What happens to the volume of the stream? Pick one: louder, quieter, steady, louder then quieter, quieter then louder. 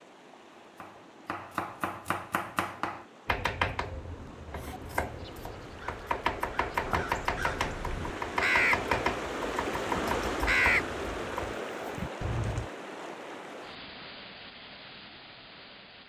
louder then quieter.